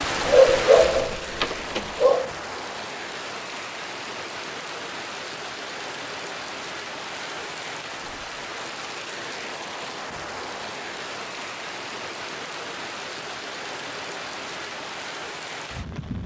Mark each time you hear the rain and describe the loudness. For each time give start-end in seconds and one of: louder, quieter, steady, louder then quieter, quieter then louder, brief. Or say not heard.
0.0-16.2 steady.